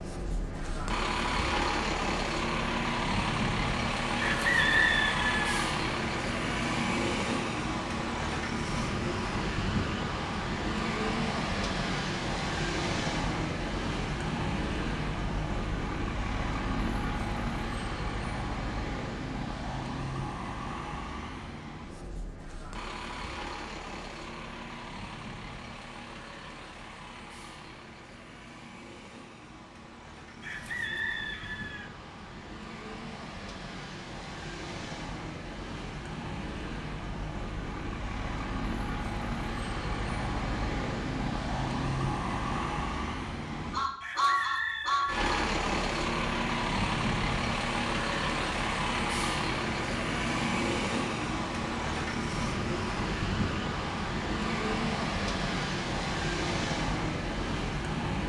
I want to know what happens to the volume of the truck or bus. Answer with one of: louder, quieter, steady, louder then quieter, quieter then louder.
quieter then louder.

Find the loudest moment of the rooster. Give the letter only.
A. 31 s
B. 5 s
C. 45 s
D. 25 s
B.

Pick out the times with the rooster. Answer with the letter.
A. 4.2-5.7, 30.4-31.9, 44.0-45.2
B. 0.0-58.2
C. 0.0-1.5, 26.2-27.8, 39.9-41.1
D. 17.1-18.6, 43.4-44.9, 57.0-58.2
A.